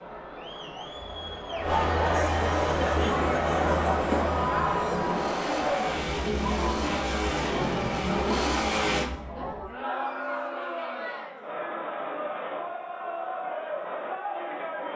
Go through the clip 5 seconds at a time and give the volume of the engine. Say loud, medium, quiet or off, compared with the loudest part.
medium, loud, off.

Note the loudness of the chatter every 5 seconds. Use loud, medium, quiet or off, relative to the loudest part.
loud, medium, medium.